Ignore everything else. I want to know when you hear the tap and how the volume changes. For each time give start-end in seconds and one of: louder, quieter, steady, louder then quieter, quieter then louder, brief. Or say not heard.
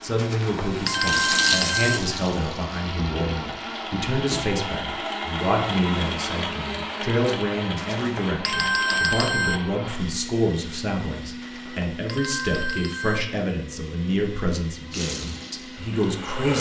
0.0-4.5 louder then quieter
14.9-16.5 brief.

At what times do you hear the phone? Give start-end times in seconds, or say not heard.
0.1-2.0, 7.8-9.6, 11.4-13.2.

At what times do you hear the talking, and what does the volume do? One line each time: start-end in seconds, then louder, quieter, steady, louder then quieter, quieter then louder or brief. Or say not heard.
0.0-16.5 steady.